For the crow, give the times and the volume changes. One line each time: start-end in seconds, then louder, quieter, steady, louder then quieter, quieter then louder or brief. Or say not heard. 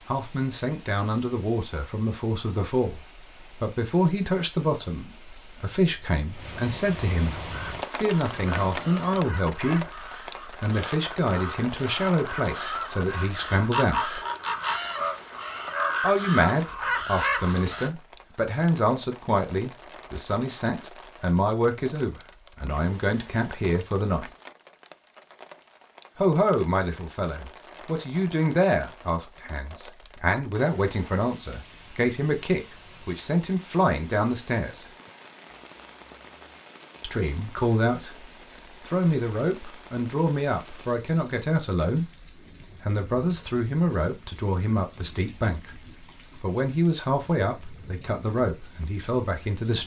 7.5-17.9 louder.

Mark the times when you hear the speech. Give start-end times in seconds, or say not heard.
0.1-14.2, 16.0-24.2, 26.1-34.9, 37.0-38.2, 38.9-42.1, 42.8-49.8.